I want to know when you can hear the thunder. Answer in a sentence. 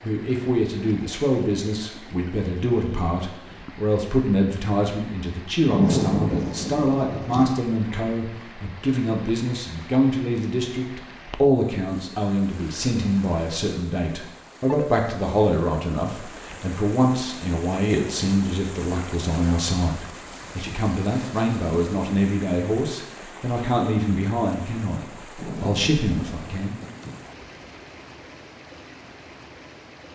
You can hear the thunder from 5.7 to 7.5 s and from 25.4 to 27.2 s.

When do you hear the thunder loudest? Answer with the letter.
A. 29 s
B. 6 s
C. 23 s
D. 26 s
B.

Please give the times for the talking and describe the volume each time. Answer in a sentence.
You can hear the talking from 0.0 to 26.9 s, at a steady volume.